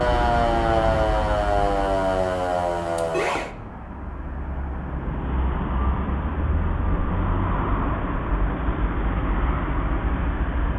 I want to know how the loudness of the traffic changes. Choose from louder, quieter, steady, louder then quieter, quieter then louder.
quieter then louder.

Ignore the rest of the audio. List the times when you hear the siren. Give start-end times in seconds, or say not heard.
0.0-3.5.